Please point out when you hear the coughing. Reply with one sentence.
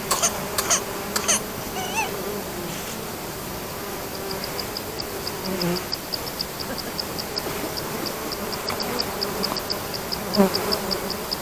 You can hear the coughing from 0.1 to 2.1 s and from 6.5 to 8.1 s.